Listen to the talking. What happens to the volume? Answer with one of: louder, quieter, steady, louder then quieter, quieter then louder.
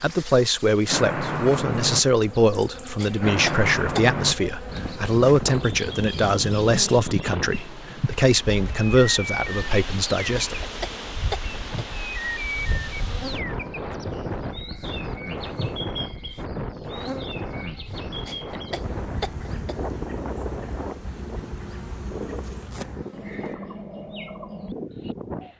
steady.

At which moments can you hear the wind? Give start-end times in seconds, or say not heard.
4.7-25.5.